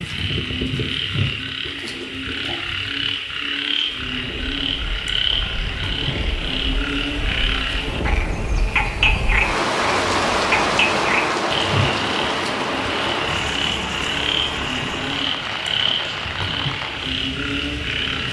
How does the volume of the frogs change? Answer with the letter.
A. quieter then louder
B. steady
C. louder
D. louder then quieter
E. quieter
B.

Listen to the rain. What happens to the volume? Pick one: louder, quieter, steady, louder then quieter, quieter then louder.
louder then quieter.